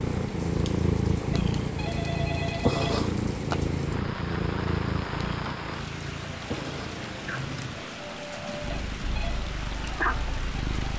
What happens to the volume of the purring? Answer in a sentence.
The loudness of the purring goes down.